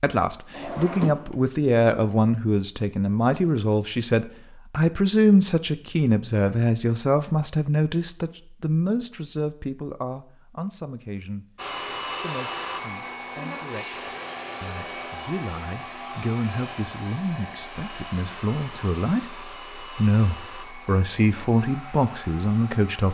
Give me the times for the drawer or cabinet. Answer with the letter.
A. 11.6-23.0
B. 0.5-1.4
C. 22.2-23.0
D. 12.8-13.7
B.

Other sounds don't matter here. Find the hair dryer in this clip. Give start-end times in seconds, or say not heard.
11.6-23.0.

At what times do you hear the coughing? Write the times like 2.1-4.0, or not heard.
not heard.